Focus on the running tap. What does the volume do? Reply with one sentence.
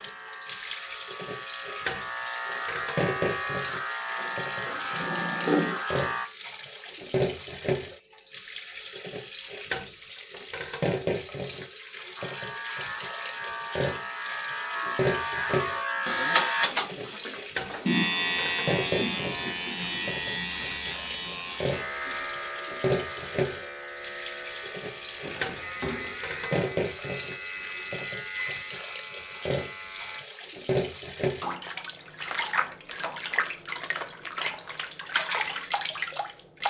The loudness of the running tap stays about the same.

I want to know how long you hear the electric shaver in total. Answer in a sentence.
You can hear the electric shaver for 24 seconds altogether.